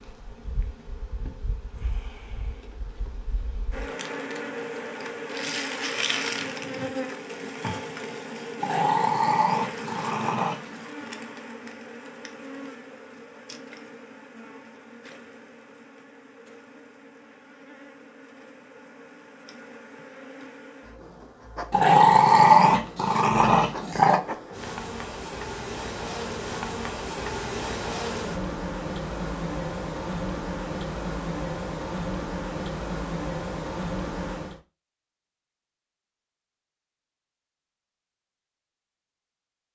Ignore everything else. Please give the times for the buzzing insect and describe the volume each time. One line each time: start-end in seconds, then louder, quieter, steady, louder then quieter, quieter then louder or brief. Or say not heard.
0.0-34.6 quieter then louder.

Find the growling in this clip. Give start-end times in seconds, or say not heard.
8.6-10.8, 21.7-24.2.